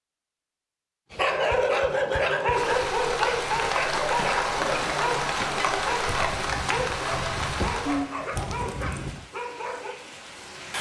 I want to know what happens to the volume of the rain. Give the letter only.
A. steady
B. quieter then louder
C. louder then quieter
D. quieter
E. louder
D.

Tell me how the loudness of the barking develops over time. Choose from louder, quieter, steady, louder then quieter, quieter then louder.
quieter.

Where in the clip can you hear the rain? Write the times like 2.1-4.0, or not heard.
2.5-10.7.